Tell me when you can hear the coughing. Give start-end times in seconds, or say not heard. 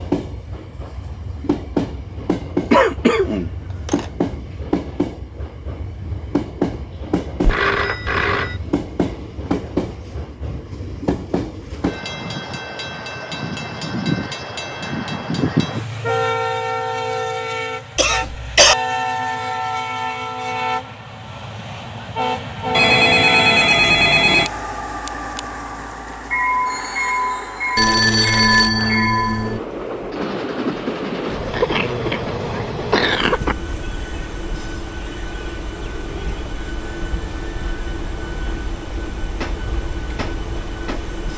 2.7-4.0, 17.9-18.8, 31.5-33.5.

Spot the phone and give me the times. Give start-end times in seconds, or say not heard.
7.4-8.6, 22.7-24.5, 27.8-29.6.